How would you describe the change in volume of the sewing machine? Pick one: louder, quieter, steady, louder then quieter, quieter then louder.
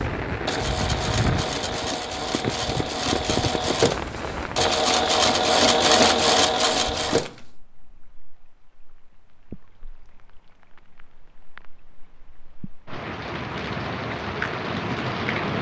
louder.